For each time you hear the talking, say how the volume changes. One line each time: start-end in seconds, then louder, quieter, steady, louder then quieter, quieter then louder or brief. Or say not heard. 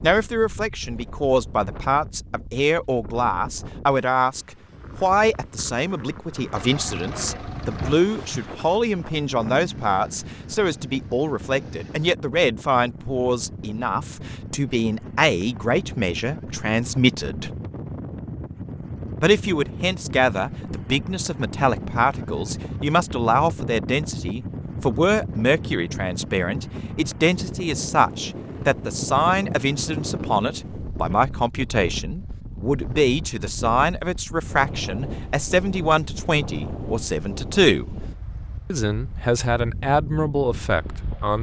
0.0-17.5 steady
19.2-37.9 steady
38.7-41.3 brief.